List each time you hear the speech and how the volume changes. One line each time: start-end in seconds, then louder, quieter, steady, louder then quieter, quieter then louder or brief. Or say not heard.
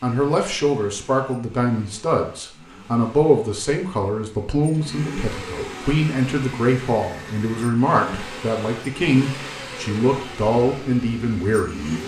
0.0-11.8 steady.